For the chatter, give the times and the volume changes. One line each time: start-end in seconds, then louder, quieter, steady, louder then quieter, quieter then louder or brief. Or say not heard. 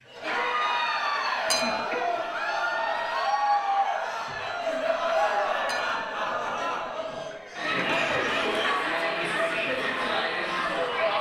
0.1-11.1 steady.